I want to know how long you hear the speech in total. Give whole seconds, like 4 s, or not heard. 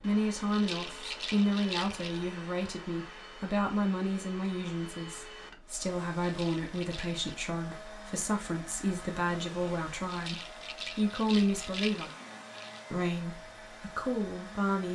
14 s.